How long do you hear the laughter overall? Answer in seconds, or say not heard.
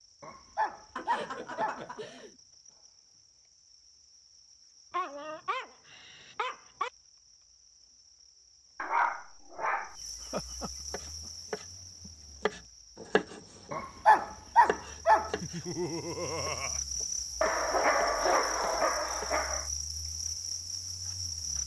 4 s.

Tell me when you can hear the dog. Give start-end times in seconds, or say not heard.
0.2-1.9, 4.9-6.9, 8.8-9.9, 13.7-15.3, 17.4-19.6.